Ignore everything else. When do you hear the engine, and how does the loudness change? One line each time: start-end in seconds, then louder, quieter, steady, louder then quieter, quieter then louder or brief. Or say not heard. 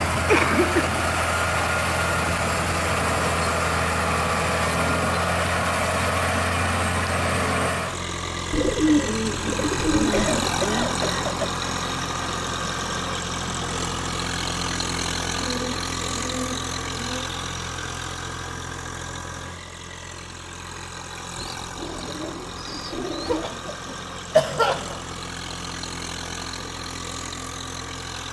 0.0-28.2 quieter.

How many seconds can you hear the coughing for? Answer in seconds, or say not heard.
4 s.